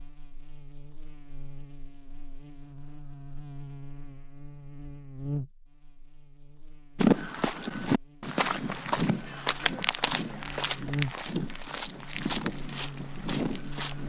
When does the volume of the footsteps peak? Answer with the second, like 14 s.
7 s.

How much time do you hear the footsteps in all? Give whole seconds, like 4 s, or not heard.
7 s.